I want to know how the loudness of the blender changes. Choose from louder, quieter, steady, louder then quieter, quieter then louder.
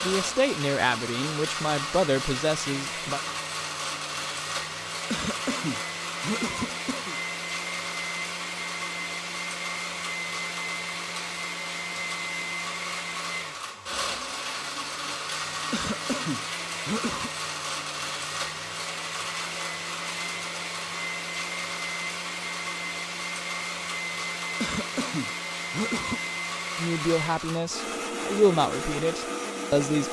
steady.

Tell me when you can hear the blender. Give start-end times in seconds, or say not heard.
0.0-30.0.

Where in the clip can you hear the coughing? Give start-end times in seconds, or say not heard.
5.1-7.2, 15.7-17.3, 24.6-26.2.